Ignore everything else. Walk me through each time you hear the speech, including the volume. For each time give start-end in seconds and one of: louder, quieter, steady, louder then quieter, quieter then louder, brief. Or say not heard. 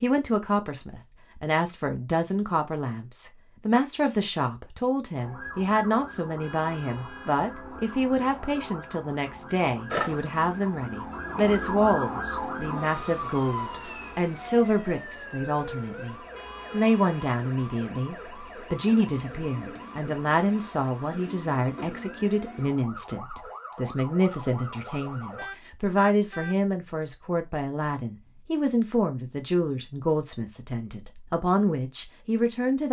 0.0-32.8 steady.